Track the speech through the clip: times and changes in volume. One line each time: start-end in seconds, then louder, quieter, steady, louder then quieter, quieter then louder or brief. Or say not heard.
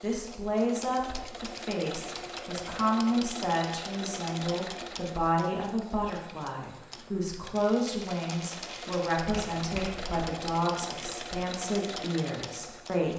0.0-13.1 steady.